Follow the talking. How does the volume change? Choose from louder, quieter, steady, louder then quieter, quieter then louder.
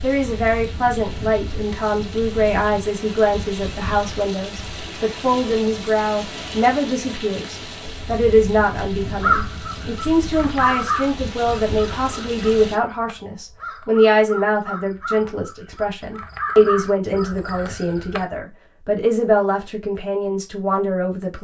steady.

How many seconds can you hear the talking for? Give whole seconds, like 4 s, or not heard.
21 s.